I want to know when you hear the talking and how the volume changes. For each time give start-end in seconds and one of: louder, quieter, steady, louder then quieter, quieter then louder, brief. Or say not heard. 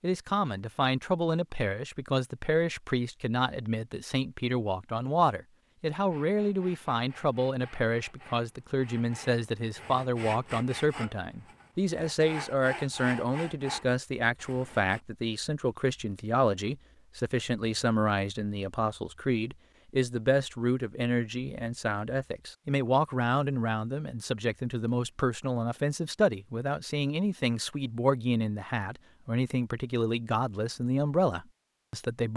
0.0-32.3 steady.